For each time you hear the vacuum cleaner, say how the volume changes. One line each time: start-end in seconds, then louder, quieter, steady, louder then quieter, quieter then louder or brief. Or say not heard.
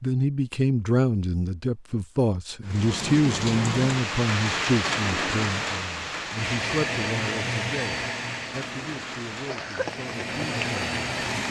6.3-11.4 quieter then louder.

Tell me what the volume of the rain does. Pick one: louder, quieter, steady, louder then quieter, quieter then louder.
quieter.